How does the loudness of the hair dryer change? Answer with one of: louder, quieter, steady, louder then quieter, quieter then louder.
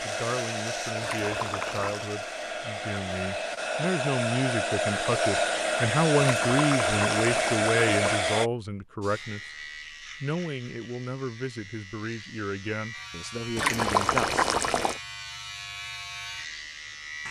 louder.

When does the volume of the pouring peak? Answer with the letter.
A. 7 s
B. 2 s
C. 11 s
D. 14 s
D.